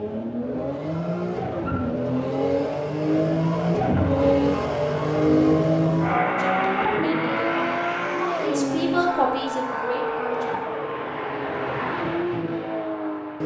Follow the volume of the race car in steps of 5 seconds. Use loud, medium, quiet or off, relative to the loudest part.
loud, loud, medium.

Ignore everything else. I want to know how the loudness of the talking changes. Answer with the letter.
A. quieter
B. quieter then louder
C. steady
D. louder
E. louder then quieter
E.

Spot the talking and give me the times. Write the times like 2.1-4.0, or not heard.
6.2-10.6.